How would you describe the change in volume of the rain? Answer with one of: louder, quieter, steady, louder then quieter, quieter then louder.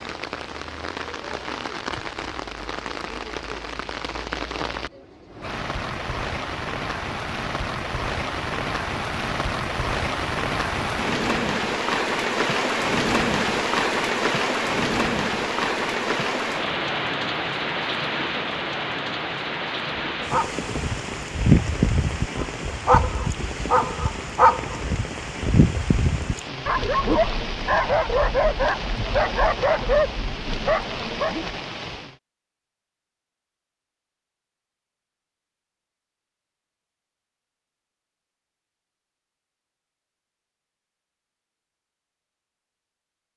louder then quieter.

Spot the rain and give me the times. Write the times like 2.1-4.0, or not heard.
0.0-32.2.